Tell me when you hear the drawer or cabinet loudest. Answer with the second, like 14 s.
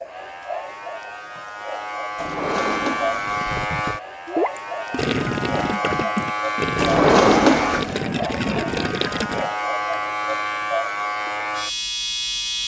7 s.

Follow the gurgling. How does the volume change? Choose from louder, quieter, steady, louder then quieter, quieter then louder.
steady.